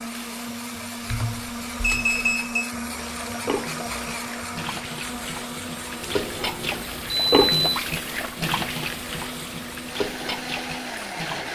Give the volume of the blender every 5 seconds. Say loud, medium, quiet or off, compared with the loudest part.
loud, medium, loud.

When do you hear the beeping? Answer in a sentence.
The beeping can be heard from 1.1 to 2.7 s and from 6.0 to 7.8 s.